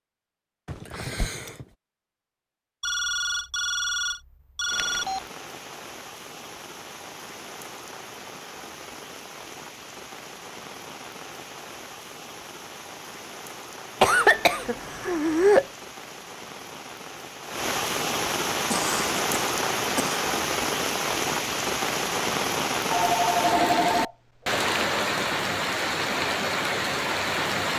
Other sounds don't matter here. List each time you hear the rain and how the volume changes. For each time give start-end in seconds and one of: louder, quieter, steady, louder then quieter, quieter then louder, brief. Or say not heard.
4.7-27.7 louder.